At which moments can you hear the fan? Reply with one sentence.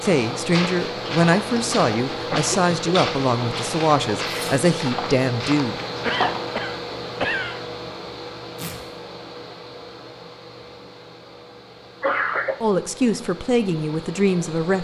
You can hear the fan from 0.0 to 14.7 s.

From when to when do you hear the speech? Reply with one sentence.
The speech can be heard from 0.0 to 5.8 s and from 12.6 to 14.7 s.